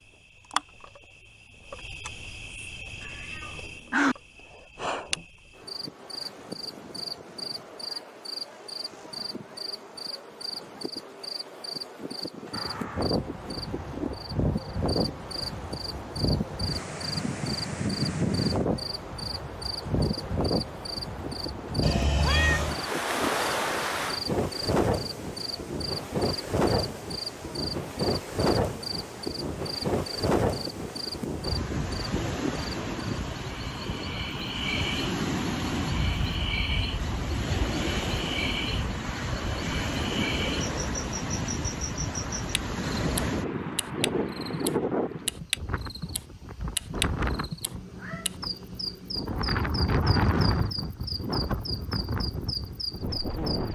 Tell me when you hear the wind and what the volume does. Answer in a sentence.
The wind can be heard from 12.5 to 53.6 s, at a steady volume.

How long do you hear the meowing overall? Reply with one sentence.
The meowing can be heard for 4 seconds in total.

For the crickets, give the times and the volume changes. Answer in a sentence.
The crickets can be heard from 0.0 to 53.6 s, at a steady volume.